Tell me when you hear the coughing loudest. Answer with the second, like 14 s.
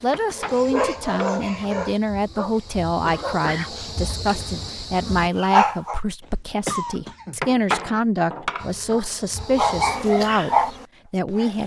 7 s.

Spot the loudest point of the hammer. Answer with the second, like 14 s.
8 s.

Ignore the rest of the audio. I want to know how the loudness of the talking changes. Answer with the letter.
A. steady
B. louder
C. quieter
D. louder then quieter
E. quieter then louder
A.